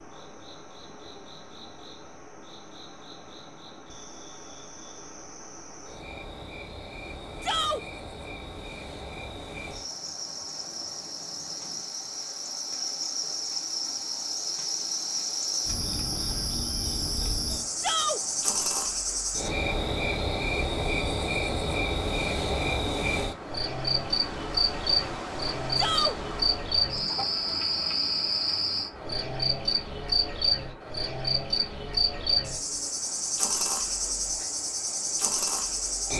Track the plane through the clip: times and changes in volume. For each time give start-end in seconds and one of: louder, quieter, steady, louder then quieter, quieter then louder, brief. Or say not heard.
not heard.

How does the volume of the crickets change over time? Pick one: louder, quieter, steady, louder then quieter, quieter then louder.
louder.